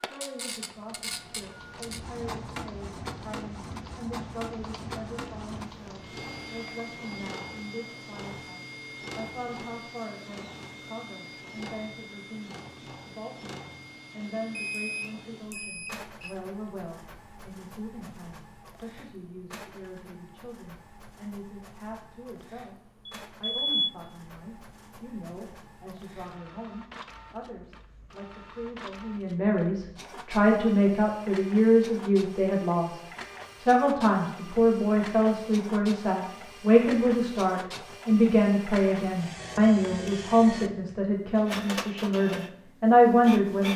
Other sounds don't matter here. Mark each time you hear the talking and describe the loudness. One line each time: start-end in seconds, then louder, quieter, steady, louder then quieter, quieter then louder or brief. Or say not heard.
0.0-43.7 louder.